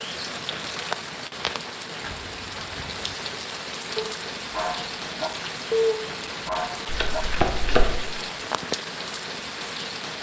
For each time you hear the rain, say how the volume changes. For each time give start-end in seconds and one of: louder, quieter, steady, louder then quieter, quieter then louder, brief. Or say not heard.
0.0-10.1 steady.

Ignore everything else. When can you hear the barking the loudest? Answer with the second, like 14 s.
6 s.